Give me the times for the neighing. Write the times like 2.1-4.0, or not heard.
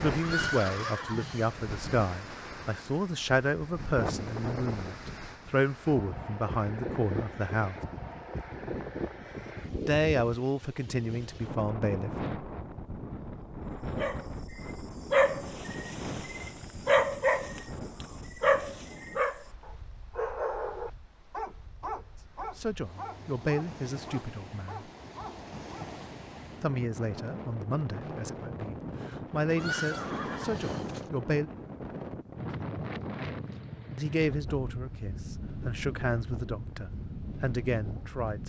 0.1-1.6, 29.5-31.1.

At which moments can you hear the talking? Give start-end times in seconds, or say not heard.
0.0-7.8, 9.8-12.1, 22.6-24.9, 26.6-31.5, 34.0-38.4.